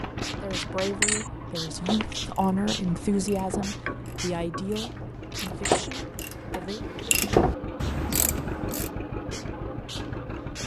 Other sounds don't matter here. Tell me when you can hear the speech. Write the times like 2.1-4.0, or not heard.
0.3-6.8.